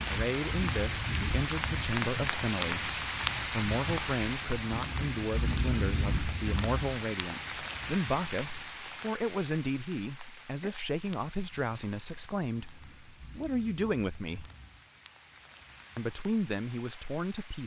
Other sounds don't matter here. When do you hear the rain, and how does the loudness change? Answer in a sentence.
The rain can be heard from 0.0 to 17.6 s, getting quieter.